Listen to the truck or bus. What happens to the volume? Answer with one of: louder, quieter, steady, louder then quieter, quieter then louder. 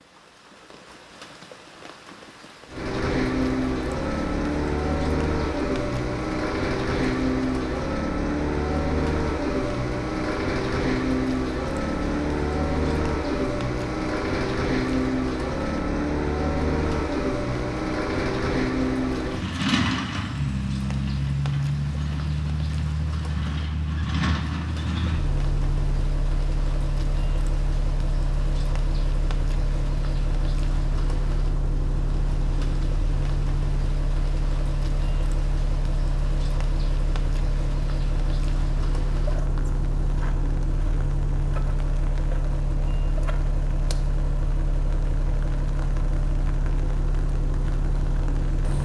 quieter.